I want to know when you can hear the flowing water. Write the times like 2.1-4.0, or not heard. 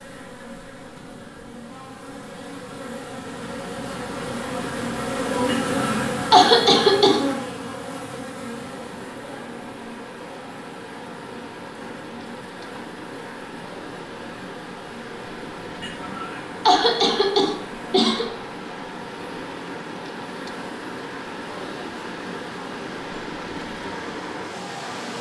8.5-25.1.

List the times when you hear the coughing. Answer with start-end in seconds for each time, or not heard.
5.5-7.2, 15.8-18.2.